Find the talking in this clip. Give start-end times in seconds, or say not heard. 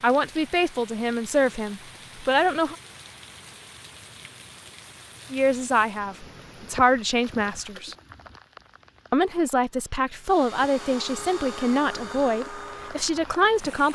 0.0-2.8, 5.3-8.0, 9.1-13.8.